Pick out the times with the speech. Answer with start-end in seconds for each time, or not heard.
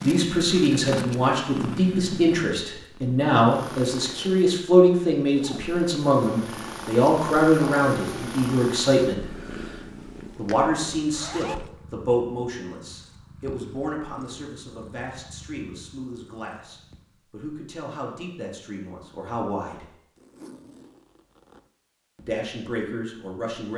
0.0-9.2, 10.3-19.9, 22.1-23.7.